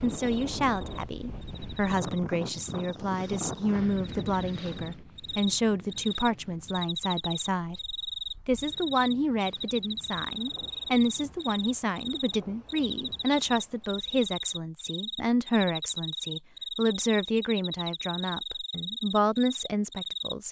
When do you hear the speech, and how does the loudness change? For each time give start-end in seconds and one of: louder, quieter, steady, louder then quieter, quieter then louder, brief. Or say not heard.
0.0-20.4 steady.